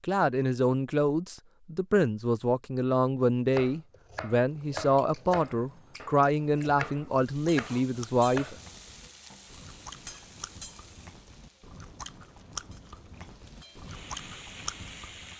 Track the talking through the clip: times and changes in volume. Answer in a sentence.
The talking can be heard from 0.0 to 8.6 s, at a steady volume.